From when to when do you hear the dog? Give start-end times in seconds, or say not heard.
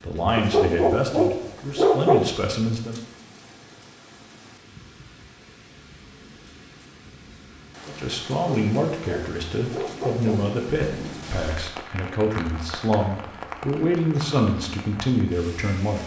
0.3-2.2, 8.3-10.6.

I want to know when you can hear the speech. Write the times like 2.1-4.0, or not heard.
0.0-3.0, 7.8-16.0.